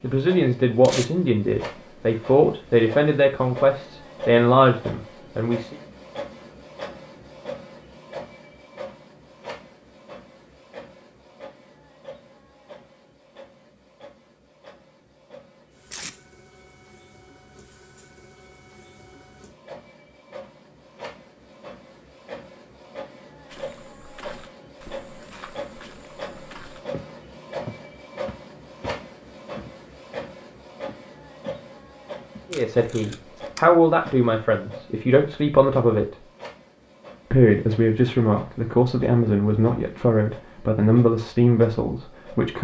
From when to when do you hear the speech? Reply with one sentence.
The speech can be heard from 0.0 to 5.8 s, from 32.5 to 36.2 s and from 37.3 to 42.5 s.